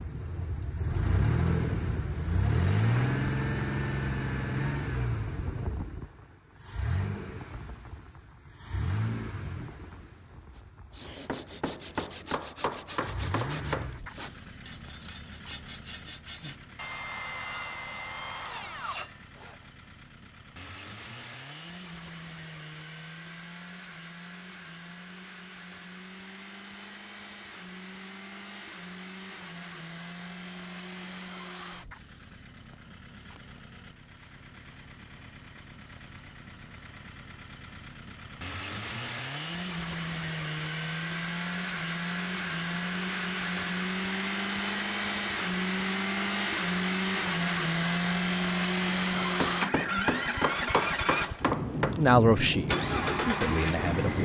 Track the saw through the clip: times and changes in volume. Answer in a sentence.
The saw can be heard from 10.5 to 19.6 s, getting louder.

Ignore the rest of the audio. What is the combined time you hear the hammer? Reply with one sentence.
You can hear the hammer for 6 seconds altogether.